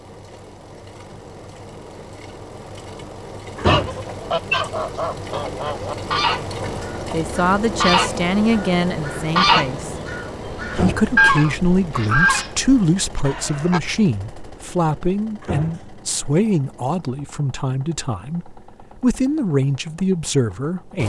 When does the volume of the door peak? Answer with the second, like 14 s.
4 s.